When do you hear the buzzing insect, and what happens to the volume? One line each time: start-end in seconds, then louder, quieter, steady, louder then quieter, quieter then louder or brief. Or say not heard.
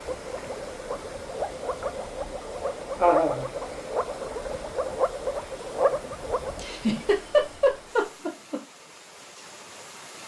not heard.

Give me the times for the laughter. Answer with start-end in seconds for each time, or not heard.
3.0-3.5, 6.5-8.6.